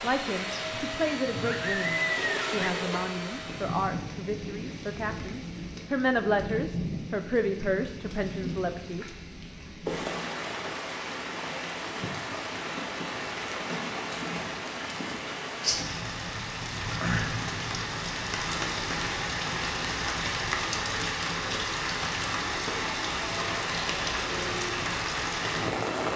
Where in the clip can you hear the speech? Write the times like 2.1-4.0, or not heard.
0.0-9.1.